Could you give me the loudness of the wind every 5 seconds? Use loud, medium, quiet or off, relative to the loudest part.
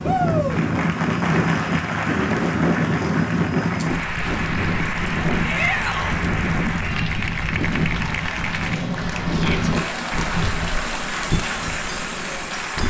loud, loud, medium.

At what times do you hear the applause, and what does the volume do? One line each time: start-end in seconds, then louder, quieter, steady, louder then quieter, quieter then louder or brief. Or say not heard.
0.0-12.8 steady.